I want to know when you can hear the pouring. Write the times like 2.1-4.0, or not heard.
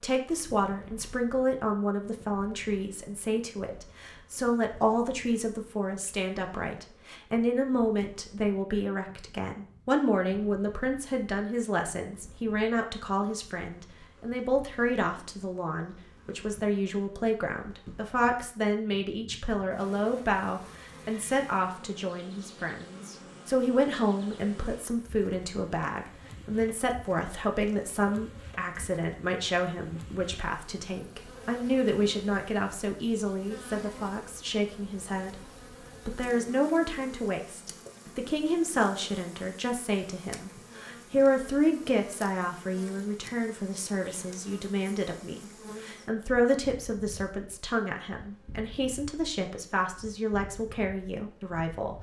not heard.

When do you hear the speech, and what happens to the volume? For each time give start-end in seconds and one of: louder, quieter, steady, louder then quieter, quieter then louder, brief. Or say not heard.
0.0-51.9 steady.